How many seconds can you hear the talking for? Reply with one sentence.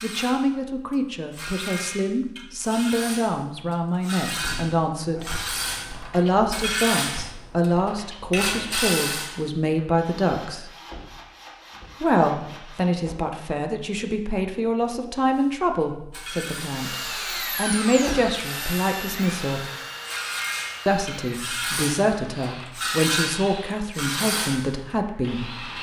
You can hear the talking for 22 seconds altogether.